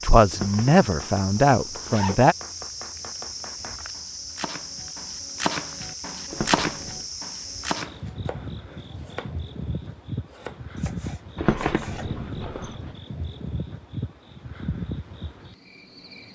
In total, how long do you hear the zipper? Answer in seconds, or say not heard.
4 s.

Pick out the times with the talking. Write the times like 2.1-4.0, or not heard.
0.0-2.4.